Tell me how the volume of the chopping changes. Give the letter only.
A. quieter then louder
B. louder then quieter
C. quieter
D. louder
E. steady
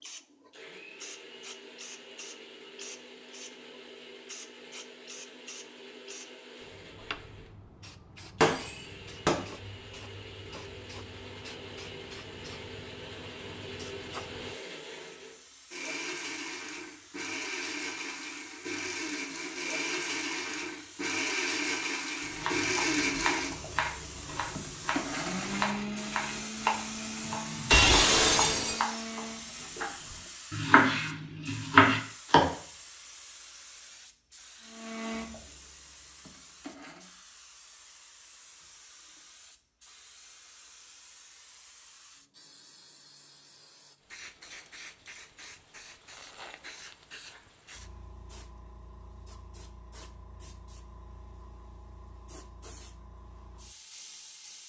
D.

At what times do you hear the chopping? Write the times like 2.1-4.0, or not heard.
22.2-32.5.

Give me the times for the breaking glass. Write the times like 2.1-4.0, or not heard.
8.4-9.3, 27.7-29.1.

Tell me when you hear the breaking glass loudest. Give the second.
28 s.